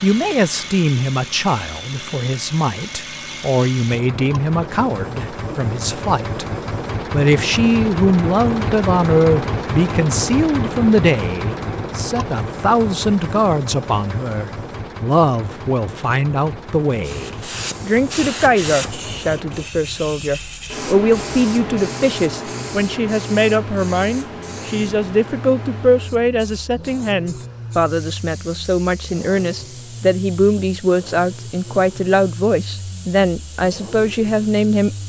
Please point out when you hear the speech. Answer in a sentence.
You can hear the speech from 0.0 to 6.5 s and from 7.1 to 35.0 s.